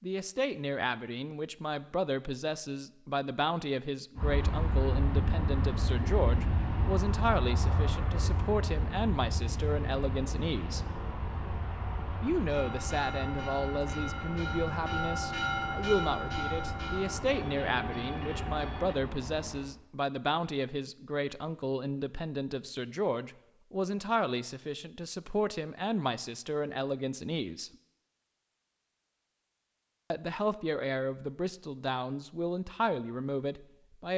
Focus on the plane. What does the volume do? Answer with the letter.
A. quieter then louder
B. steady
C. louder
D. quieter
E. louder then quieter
D.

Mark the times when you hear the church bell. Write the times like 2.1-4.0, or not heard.
12.5-18.9.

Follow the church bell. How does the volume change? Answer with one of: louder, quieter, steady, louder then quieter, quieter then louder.
louder then quieter.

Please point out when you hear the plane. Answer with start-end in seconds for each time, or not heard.
4.2-19.7.